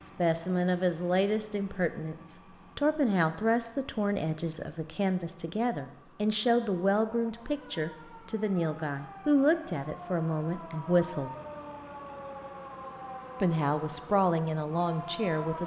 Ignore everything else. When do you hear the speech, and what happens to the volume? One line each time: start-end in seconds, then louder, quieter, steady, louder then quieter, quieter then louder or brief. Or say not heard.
0.0-11.3 steady
13.4-15.6 brief.